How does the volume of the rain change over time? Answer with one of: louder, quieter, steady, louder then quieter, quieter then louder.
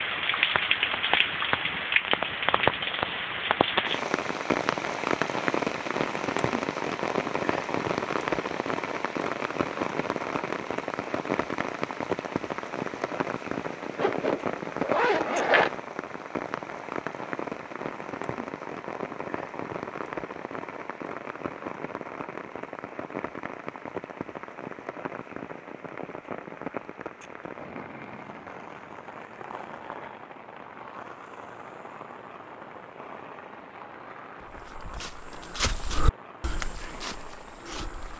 quieter.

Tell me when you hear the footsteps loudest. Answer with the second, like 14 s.
36 s.